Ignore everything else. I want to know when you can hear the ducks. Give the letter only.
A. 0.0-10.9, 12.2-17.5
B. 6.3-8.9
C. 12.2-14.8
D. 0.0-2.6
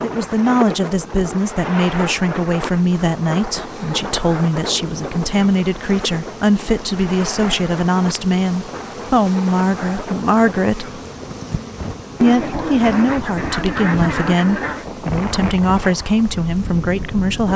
C.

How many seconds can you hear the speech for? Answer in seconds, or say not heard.
16 s.